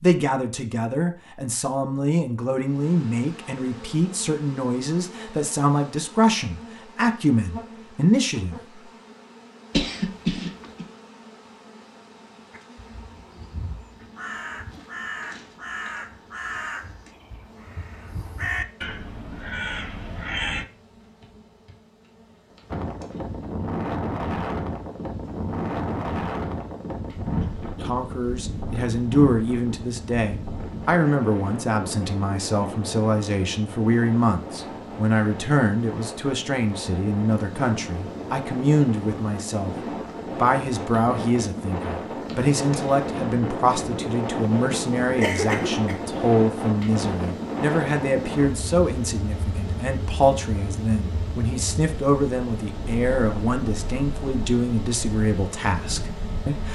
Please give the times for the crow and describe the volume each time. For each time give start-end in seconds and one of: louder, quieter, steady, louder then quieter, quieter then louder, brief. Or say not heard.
12.5-20.6 louder.